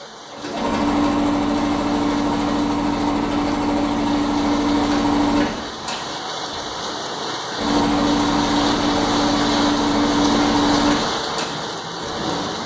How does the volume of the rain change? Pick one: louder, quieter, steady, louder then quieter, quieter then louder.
louder.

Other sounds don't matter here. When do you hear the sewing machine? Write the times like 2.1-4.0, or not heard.
0.0-12.6.